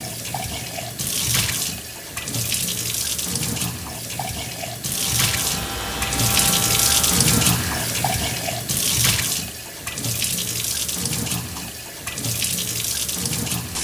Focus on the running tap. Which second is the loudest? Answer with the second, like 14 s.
7 s.